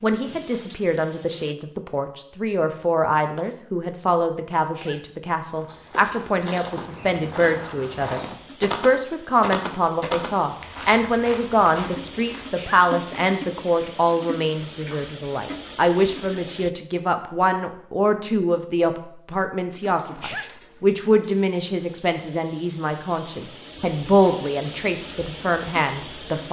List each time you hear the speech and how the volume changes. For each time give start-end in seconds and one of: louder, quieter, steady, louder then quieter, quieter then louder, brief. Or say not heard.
0.0-26.4 steady.